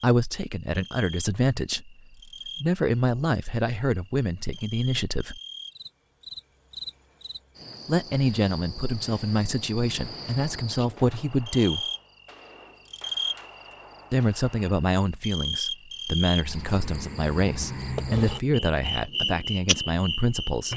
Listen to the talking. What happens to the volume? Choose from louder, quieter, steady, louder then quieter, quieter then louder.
steady.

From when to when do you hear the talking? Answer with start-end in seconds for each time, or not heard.
0.0-5.4, 7.8-11.8, 14.1-20.7.